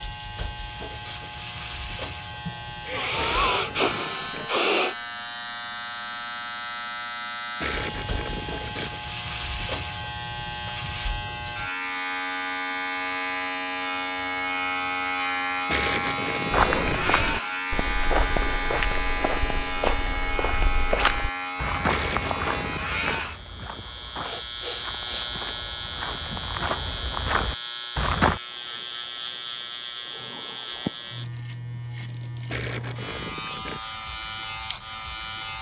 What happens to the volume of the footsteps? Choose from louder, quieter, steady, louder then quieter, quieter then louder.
quieter then louder.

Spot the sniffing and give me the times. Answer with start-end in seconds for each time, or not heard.
2.5-5.0, 24.2-25.3.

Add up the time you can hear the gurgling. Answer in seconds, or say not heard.
7 s.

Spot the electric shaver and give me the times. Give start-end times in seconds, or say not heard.
0.0-35.5.